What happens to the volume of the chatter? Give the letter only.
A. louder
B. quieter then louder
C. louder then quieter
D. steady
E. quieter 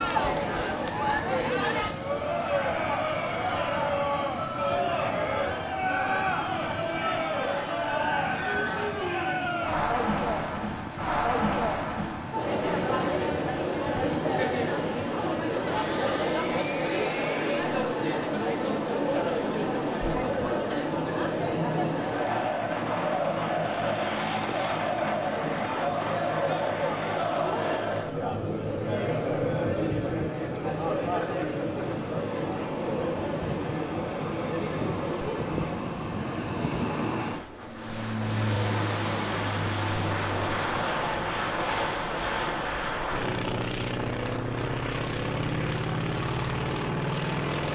D.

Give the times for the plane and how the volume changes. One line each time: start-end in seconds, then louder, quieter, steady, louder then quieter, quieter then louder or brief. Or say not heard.
0.0-47.7 louder.